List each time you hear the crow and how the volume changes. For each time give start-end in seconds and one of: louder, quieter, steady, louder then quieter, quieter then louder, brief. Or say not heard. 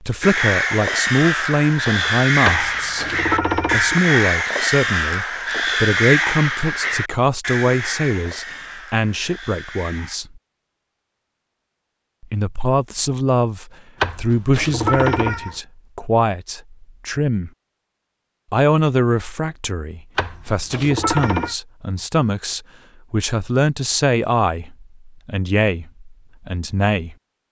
0.2-10.2 quieter.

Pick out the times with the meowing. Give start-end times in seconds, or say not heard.
2.5-4.0, 14.0-15.6, 20.1-21.6.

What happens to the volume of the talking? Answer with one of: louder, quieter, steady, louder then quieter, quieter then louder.
steady.